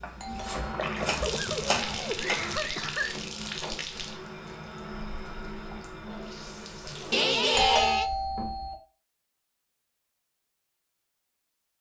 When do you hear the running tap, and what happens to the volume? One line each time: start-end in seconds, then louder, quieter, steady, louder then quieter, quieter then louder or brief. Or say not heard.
0.0-7.7 quieter.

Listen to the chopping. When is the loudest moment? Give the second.
2 s.